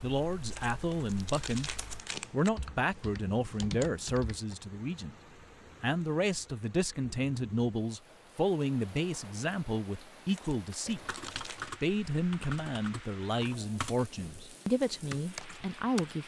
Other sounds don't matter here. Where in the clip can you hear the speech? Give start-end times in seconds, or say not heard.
0.0-1.7, 2.3-5.2, 5.8-11.0, 11.8-16.2.